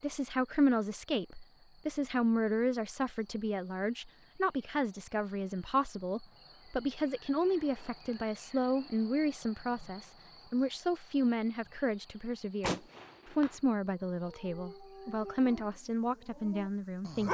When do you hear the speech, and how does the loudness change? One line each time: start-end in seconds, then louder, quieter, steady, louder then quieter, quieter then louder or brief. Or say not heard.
0.0-17.2 steady.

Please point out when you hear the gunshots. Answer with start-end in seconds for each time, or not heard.
12.6-13.6.